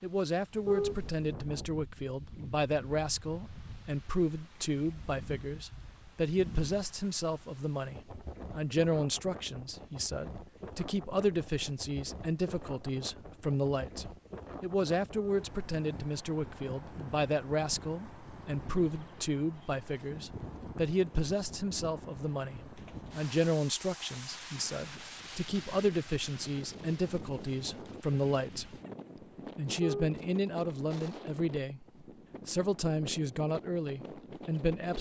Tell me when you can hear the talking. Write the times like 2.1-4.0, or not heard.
0.0-28.8, 29.6-34.9.